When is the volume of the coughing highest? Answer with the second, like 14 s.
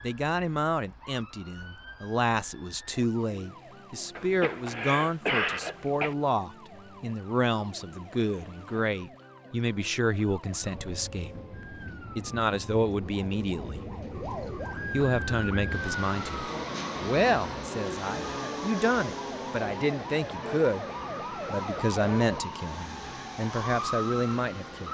5 s.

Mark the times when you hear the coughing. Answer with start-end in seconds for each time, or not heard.
4.2-6.2.